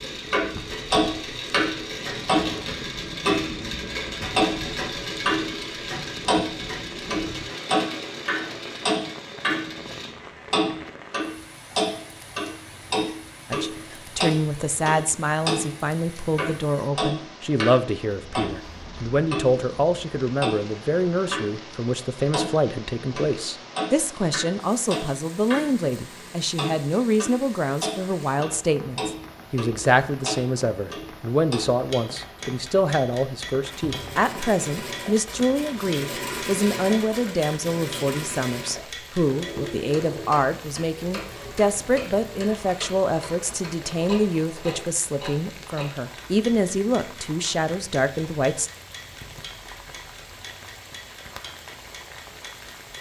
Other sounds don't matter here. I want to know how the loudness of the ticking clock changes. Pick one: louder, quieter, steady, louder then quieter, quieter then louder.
quieter.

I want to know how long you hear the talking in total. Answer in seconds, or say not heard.
35 s.